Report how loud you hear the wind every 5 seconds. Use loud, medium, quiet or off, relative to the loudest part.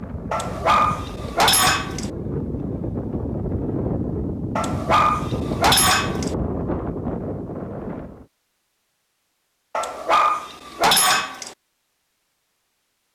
loud, loud, off.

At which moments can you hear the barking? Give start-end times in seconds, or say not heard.
0.3-2.1, 4.5-6.3, 9.8-11.6.